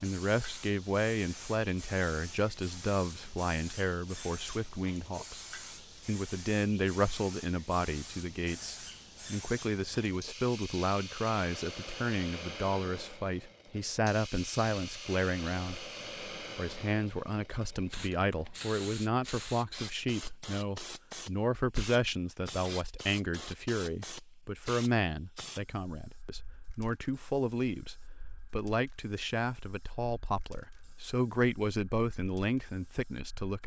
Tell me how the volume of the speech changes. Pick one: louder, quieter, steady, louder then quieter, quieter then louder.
steady.